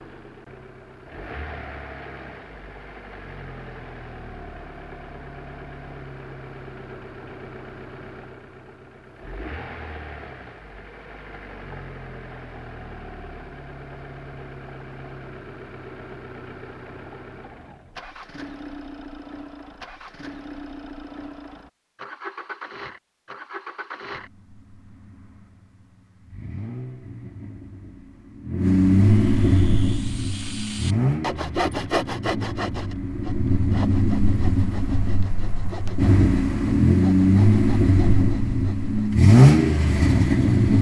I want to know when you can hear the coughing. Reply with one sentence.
The coughing can't be heard in this clip.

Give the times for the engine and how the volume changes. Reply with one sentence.
The engine can be heard from 0.0 to 40.7 s, getting louder.